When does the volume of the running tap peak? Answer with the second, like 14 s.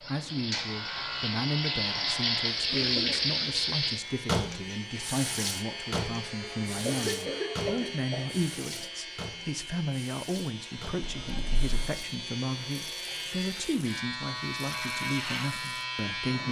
3 s.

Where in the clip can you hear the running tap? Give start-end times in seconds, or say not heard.
0.0-16.4.